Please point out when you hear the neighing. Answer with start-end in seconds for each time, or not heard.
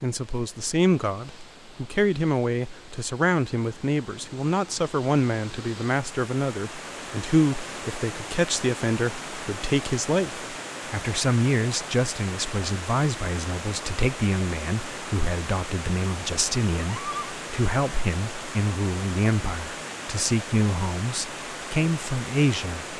16.7-17.4.